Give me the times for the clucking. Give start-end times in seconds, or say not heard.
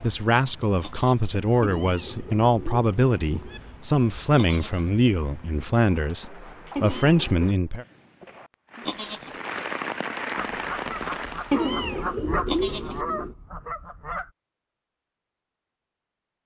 10.3-14.3.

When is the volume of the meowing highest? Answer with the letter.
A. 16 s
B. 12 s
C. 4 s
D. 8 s
B.